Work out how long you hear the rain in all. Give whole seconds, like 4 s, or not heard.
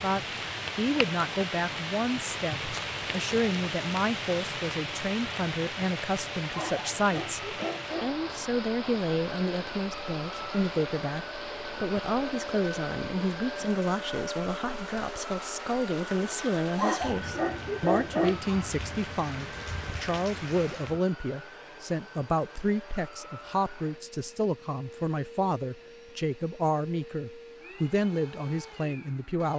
21 s.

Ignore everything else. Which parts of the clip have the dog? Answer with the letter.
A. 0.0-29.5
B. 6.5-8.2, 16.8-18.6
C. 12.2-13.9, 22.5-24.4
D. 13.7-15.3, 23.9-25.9
B.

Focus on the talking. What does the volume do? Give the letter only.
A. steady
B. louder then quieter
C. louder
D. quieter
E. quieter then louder
A.